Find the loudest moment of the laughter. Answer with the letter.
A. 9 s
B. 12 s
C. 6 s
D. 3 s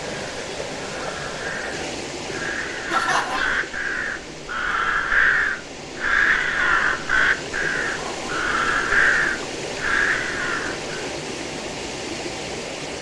D.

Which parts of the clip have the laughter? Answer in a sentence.
You can hear the laughter from 2.9 to 3.6 s and from 7.8 to 8.3 s.